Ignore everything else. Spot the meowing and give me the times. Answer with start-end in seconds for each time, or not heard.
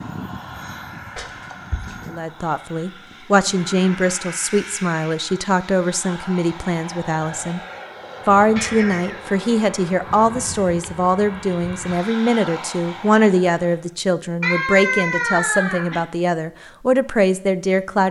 1.1-2.1, 8.6-9.2, 14.4-16.1.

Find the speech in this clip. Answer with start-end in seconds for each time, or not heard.
2.1-7.6, 8.2-18.0.